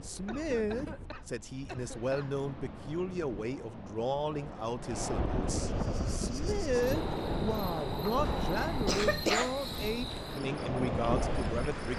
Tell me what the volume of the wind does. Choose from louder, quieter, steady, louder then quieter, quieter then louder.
louder.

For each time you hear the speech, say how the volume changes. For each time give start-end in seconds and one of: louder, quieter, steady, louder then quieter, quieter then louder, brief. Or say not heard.
0.0-11.9 steady.